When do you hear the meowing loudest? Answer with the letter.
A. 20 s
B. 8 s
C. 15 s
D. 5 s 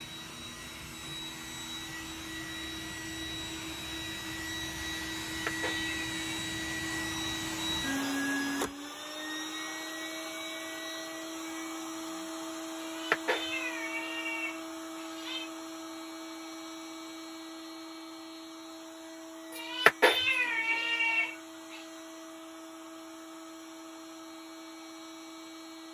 A.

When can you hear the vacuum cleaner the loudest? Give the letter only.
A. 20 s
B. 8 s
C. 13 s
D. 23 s
B.